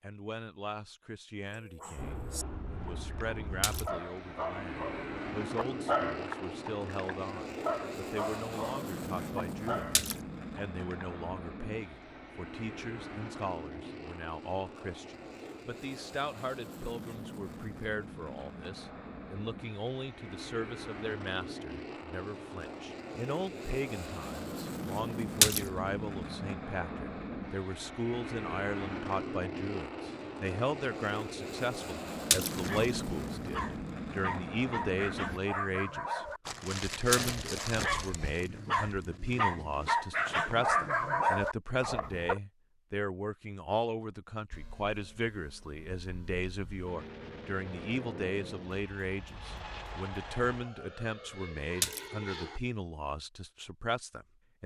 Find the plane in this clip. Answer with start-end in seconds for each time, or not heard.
1.9-35.4, 44.5-52.6.